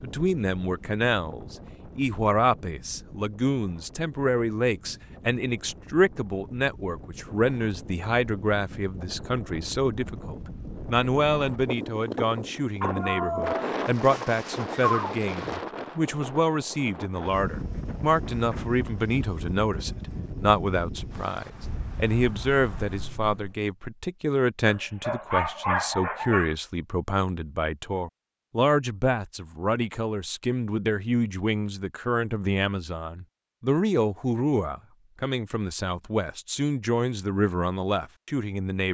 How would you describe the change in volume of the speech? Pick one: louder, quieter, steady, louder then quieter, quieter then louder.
steady.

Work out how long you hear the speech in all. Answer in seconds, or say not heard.
39 s.